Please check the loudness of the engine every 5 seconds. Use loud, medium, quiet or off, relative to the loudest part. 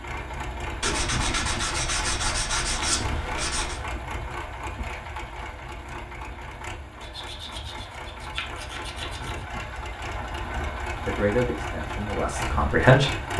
loud, medium, loud.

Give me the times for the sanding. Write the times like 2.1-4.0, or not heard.
0.8-3.8, 7.0-9.4.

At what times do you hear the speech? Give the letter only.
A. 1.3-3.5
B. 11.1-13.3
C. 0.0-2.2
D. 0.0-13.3
B.